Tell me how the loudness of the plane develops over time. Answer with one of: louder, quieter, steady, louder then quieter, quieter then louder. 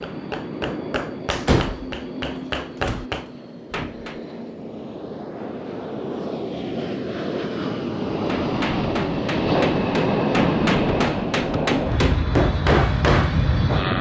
louder.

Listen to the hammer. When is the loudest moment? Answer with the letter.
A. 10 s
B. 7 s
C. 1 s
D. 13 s
D.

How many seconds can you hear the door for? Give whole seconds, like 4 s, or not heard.
2 s.